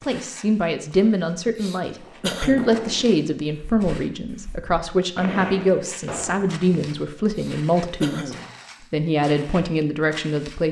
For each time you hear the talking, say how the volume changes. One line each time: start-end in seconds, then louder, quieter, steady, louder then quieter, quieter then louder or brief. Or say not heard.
0.1-10.6 steady.